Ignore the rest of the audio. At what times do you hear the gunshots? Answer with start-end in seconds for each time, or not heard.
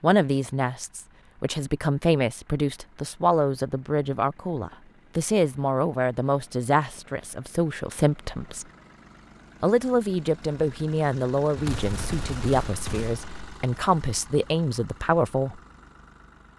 11.6-13.3.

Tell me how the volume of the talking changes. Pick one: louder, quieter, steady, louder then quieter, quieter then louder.
steady.